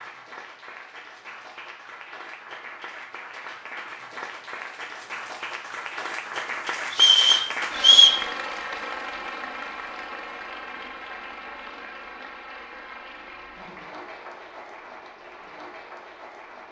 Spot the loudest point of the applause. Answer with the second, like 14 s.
8 s.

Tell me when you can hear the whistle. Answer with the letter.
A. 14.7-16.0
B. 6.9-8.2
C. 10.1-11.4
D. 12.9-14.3
B.